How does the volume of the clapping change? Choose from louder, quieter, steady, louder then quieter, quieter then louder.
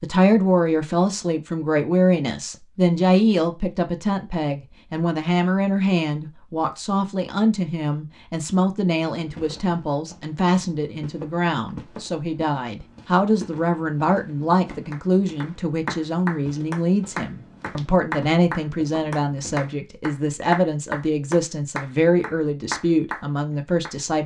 steady.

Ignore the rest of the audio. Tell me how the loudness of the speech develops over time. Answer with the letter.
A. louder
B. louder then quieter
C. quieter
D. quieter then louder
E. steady
E.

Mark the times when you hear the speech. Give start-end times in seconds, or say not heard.
0.0-24.2.